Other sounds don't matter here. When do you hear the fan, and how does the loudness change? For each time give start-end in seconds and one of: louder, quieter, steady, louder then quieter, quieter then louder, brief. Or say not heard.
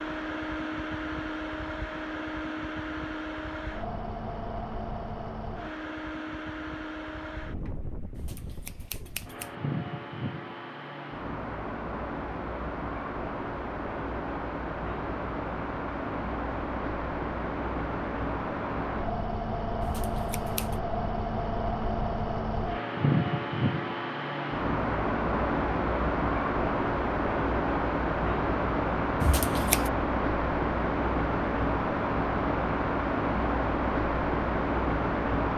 0.0-35.5 louder.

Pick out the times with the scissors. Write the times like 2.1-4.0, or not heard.
8.2-9.6, 19.8-20.8, 29.2-29.9.